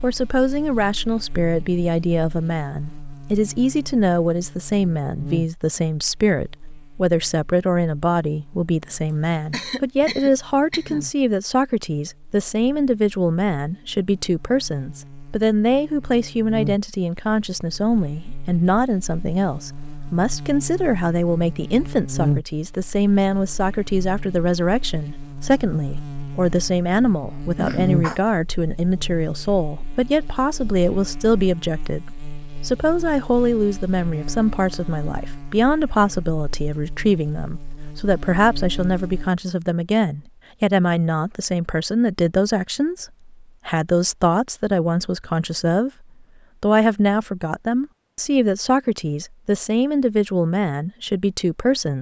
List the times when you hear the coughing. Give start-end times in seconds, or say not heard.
9.5-11.1, 27.6-28.2.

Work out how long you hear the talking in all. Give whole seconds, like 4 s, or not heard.
51 s.